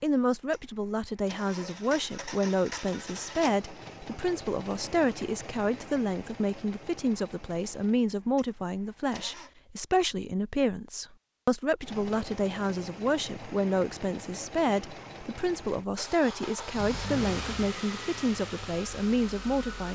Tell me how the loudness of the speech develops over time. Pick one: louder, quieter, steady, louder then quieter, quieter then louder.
steady.